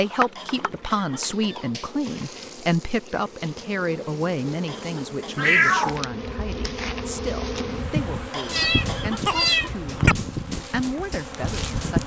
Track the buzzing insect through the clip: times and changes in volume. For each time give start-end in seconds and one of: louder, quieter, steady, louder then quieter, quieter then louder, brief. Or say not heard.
0.0-12.0 louder.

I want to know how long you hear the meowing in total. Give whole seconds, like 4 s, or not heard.
4 s.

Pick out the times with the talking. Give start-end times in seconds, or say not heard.
0.0-12.0.